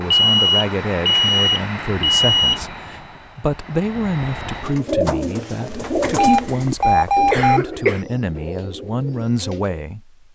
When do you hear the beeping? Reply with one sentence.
You can hear the beeping from 0.1 to 2.6 s and from 6.0 to 7.6 s.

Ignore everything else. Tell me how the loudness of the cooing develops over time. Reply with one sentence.
The volume of the cooing goes down.